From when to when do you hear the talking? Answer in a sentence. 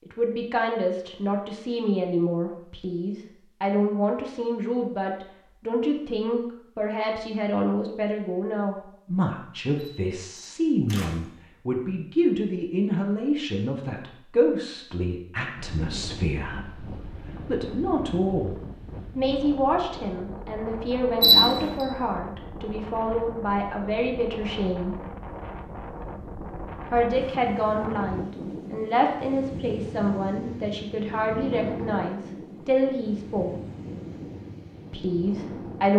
You can hear the talking from 0.1 to 18.6 s, from 19.1 to 24.9 s, from 26.9 to 33.5 s and from 34.9 to 35.9 s.